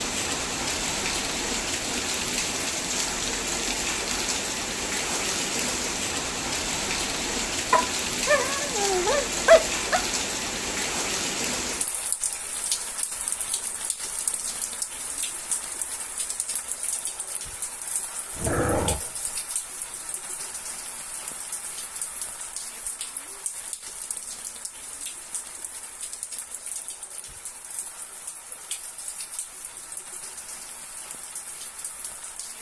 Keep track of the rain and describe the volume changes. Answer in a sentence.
The loudness of the rain goes down.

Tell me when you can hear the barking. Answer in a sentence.
You can hear the barking from 7.7 to 10.0 s and from 18.3 to 19.4 s.